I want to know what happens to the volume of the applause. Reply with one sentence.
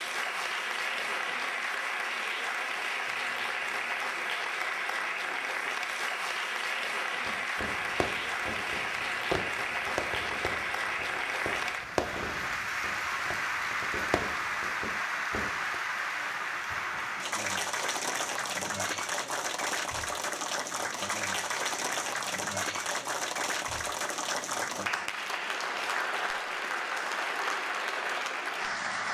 The volume of the applause stays about the same.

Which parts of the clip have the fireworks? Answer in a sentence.
The fireworks can be heard from 7.2 to 15.8 s.